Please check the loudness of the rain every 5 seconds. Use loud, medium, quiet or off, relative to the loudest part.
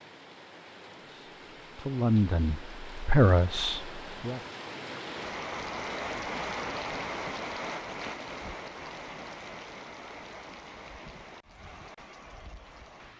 medium, loud, medium.